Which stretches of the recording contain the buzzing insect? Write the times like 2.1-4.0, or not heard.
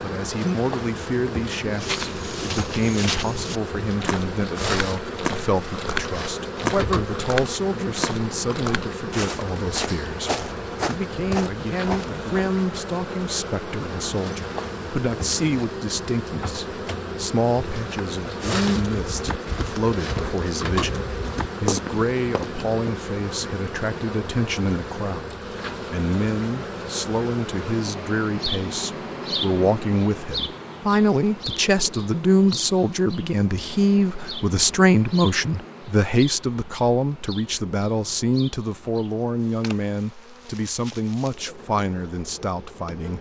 0.0-43.1.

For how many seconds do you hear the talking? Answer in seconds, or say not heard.
43 s.